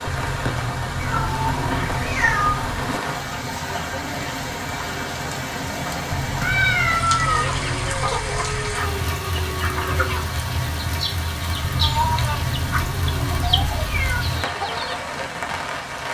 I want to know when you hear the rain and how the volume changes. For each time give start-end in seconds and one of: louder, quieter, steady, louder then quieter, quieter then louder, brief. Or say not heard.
0.0-16.0 steady.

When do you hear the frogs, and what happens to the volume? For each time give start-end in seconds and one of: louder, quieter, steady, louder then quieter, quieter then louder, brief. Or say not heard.
not heard.